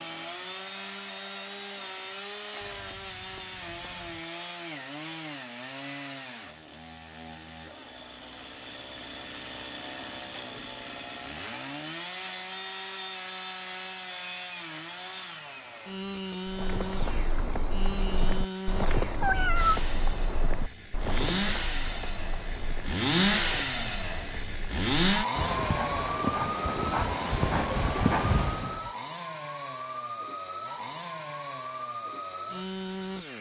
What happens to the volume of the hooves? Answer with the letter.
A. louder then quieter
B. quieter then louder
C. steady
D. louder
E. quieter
B.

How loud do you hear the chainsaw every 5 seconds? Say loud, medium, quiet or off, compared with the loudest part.
medium, medium, medium, medium, loud, loud, medium.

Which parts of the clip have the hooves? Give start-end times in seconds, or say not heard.
16.4-28.9.